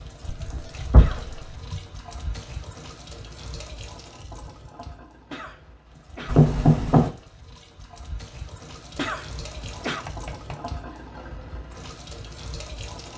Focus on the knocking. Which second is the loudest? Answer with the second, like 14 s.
7 s.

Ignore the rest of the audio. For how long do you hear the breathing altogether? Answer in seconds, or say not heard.
not heard.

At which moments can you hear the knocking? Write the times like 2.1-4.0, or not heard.
0.3-1.8, 6.2-7.1, 10.1-10.9.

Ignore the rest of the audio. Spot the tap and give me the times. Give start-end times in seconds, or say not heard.
0.0-13.1.